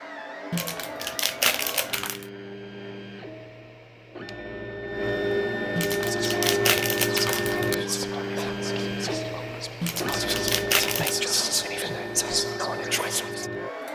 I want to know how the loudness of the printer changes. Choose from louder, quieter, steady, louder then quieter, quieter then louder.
louder then quieter.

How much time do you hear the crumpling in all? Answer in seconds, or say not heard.
5 s.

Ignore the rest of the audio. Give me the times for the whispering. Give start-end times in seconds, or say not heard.
6.0-13.5.